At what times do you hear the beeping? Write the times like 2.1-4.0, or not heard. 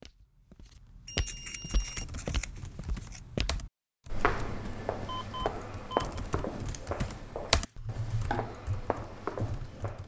1.1-2.0, 5.0-6.0.